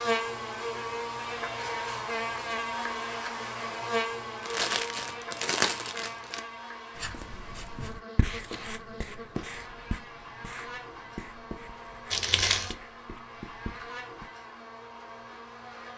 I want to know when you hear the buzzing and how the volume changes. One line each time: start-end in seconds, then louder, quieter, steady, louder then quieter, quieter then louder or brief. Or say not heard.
0.0-15.9 quieter.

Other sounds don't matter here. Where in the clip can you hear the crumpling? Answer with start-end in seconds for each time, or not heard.
4.4-6.4, 12.1-12.8.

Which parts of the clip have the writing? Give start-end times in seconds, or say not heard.
7.0-14.3.